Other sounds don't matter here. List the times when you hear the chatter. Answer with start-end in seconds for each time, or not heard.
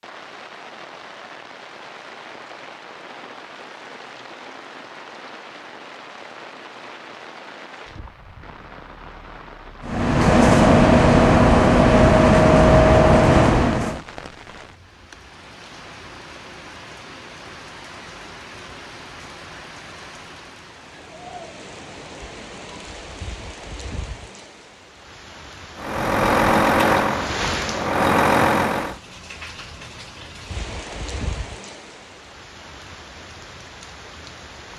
not heard.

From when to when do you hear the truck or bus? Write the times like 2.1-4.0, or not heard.
9.8-14.0, 25.8-29.0.